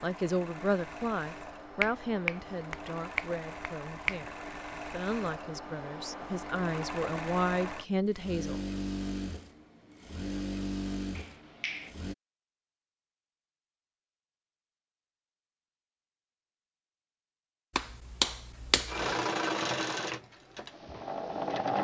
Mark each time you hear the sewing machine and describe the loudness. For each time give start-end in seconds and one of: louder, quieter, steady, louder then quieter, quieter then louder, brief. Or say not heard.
0.0-12.2 louder
18.8-21.7 brief.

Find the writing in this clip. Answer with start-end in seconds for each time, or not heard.
not heard.